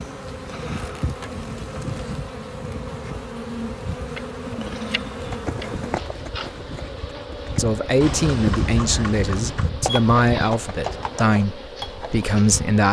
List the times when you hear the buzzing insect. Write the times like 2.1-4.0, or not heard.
0.0-12.8.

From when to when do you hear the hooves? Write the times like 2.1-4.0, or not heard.
5.0-12.2.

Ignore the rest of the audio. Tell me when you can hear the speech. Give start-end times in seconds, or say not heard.
7.5-12.8.